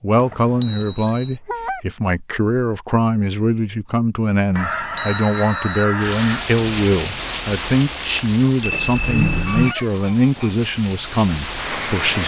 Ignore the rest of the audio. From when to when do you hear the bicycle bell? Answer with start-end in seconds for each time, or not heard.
0.1-1.4, 4.5-5.8, 8.6-9.8.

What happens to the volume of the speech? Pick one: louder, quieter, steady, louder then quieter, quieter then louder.
steady.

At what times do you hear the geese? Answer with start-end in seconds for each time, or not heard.
0.3-1.8, 4.5-6.5, 9.4-10.6.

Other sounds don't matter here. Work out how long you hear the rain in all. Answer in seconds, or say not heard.
6 s.